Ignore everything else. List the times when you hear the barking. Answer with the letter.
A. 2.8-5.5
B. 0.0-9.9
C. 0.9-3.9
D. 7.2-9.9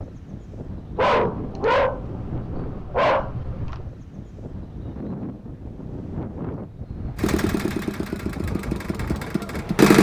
C.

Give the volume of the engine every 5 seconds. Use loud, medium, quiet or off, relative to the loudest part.
off, loud.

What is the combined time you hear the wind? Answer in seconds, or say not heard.
10 s.